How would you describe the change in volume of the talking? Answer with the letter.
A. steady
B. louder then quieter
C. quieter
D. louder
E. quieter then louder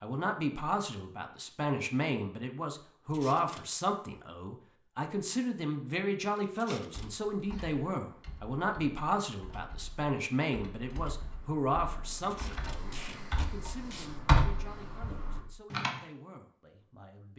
C.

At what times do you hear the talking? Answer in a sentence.
You can hear the talking from 0.0 to 17.3 s.